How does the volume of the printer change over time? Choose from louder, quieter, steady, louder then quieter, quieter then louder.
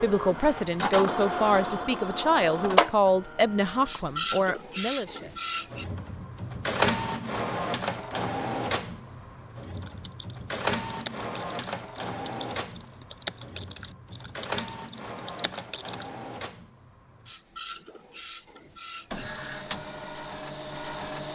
quieter.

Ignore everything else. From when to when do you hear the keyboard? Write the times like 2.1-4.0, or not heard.
9.8-16.1.